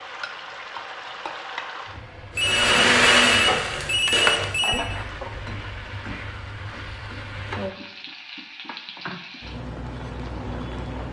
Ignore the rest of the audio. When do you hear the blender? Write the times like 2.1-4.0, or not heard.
2.4-4.5.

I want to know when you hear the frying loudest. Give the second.
3 s.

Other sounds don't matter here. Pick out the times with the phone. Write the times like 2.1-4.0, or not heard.
2.4-4.9.